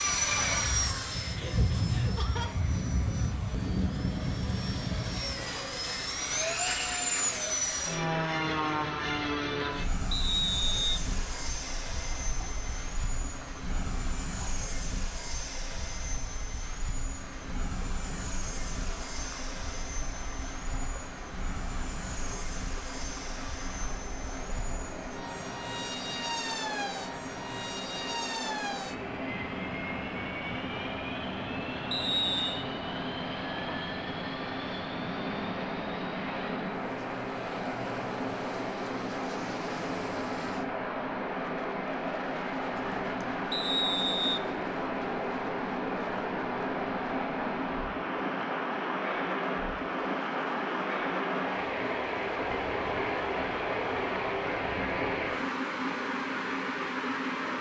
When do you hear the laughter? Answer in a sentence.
You can hear the laughter from 1.4 to 2.5 s and from 42.7 to 43.4 s.